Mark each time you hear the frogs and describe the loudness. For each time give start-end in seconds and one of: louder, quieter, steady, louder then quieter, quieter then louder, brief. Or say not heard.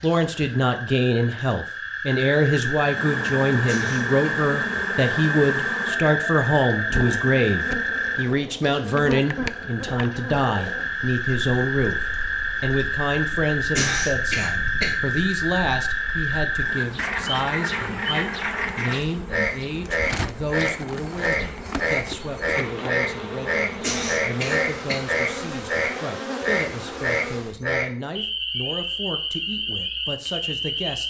0.0-31.0 steady.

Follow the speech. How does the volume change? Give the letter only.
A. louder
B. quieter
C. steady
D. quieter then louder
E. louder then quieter
B.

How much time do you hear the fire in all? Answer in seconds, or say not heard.
not heard.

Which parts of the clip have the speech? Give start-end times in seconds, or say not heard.
0.0-31.0.